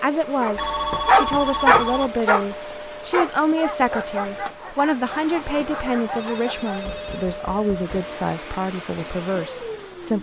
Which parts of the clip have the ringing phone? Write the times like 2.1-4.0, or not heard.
0.6-2.1, 5.5-7.3.